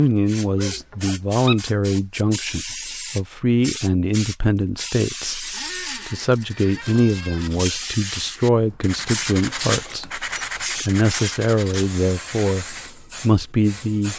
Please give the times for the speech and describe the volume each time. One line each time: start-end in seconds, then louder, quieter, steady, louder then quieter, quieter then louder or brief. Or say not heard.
0.0-14.1 steady.